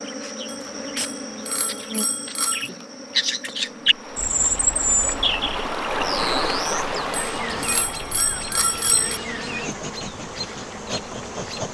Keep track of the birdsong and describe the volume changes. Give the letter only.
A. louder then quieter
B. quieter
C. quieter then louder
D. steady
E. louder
A.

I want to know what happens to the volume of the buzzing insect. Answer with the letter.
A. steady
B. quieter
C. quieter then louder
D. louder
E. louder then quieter
C.